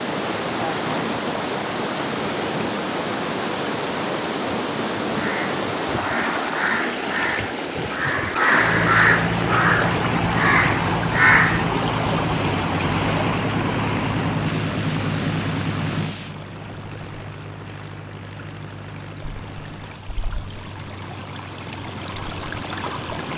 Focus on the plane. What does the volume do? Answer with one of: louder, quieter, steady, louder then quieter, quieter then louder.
quieter.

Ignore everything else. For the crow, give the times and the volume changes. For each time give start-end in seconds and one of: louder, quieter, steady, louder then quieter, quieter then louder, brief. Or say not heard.
5.1-11.7 louder.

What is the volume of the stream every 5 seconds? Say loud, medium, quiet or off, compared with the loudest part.
loud, loud, loud, quiet, medium.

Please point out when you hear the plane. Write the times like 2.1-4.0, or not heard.
8.4-23.3.